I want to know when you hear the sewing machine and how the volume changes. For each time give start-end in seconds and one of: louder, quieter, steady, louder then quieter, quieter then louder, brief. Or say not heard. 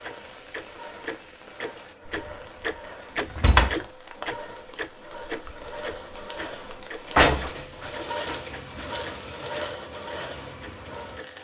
0.0-11.3 louder.